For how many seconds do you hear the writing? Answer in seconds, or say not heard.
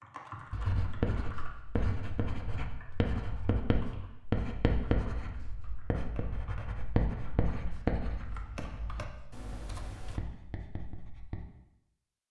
11 s.